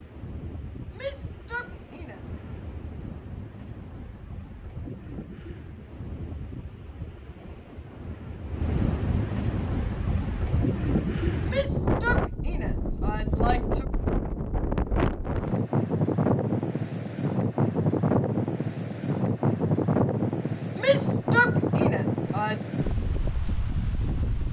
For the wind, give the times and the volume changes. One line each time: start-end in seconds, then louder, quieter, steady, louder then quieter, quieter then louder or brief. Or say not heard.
0.0-24.4 louder.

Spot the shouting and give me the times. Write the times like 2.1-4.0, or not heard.
0.9-2.2, 11.4-13.8, 20.8-22.6.